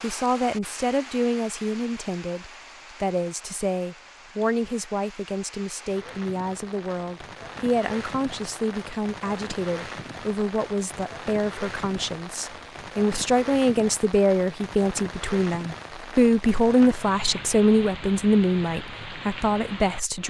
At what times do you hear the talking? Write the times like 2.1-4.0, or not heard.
0.0-20.2.